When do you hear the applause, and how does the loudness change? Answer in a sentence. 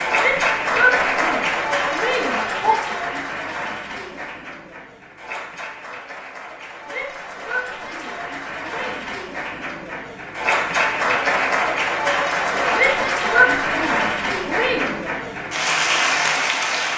You can hear the applause from 0.0 to 16.9 s, getting quieter then louder.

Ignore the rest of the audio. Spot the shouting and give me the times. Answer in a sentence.
The shouting can be heard from 0.1 to 2.8 s, from 6.8 to 9.1 s and from 12.7 to 15.0 s.